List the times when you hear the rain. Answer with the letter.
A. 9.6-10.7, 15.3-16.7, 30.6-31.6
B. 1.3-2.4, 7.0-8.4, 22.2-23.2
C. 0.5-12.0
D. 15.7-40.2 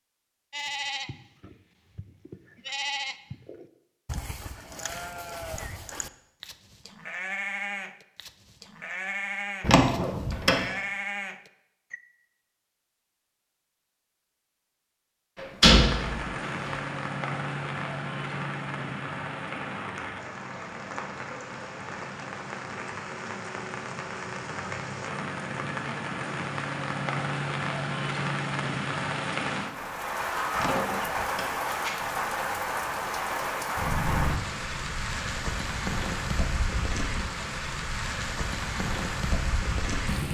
D.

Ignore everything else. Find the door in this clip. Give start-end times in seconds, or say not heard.
9.6-10.7, 15.3-16.7, 30.6-31.6.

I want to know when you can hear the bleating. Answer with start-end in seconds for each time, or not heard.
0.5-12.0.